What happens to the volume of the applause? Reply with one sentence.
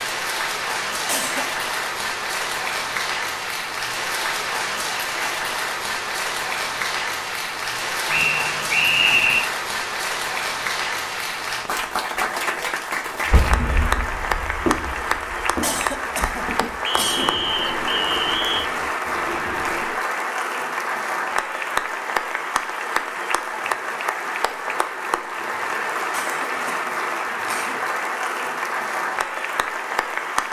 The volume of the applause stays about the same.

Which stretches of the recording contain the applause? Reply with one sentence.
The applause can be heard from 0.0 to 30.4 s.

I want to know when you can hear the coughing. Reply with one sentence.
You can hear the coughing from 1.1 to 1.6 s, from 15.6 to 17.4 s and from 26.1 to 27.9 s.